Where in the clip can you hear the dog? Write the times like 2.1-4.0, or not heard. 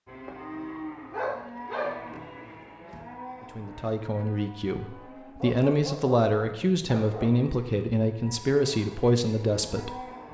1.1-2.2, 5.4-7.3.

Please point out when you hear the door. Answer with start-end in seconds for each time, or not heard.
not heard.